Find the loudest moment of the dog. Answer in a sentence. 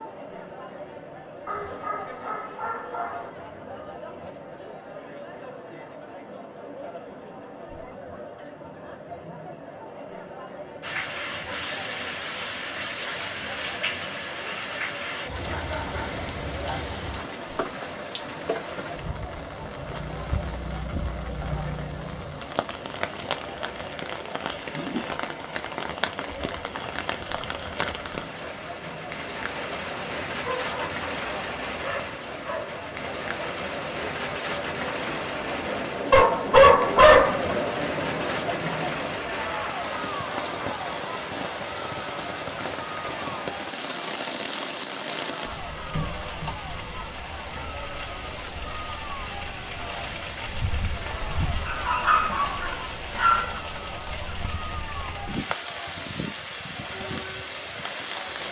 The loudest moment of the dog is at 37 seconds.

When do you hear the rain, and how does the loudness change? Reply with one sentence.
You can hear the rain from 10.8 to 58.4 s, at a steady volume.